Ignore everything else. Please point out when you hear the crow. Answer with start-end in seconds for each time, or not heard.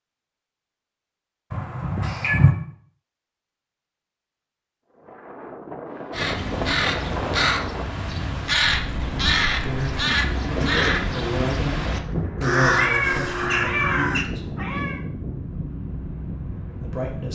6.1-14.2.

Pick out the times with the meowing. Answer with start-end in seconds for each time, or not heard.
1.5-2.5, 8.6-10.1, 12.8-15.0.